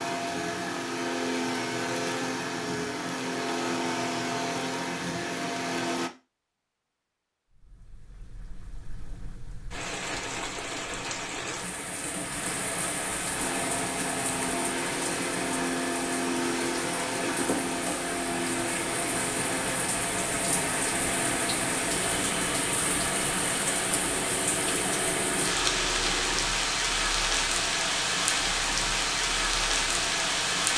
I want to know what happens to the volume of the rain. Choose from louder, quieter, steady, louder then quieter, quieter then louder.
louder.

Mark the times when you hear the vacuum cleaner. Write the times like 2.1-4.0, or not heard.
0.0-6.1, 13.3-26.4.